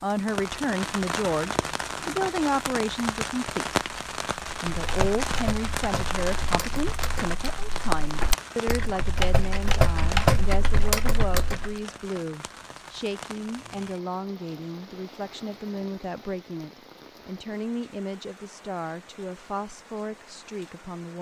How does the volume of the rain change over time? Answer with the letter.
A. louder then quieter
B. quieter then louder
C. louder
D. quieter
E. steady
D.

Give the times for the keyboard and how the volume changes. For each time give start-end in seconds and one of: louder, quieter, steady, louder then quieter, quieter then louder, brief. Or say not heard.
4.7-11.8 louder.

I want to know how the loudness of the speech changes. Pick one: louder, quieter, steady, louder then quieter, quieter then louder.
quieter.